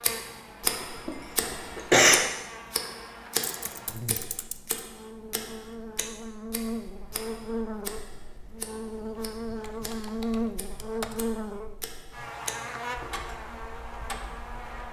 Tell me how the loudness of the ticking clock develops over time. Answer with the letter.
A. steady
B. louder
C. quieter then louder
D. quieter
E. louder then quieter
C.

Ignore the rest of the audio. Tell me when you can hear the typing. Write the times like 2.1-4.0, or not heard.
3.5-4.8, 9.5-11.2.